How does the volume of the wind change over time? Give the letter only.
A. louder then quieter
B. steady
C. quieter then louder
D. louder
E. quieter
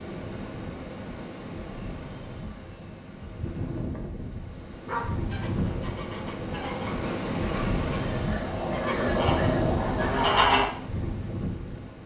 D.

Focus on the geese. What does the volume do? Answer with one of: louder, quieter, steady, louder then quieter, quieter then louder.
louder.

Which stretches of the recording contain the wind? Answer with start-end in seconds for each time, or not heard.
0.0-12.0.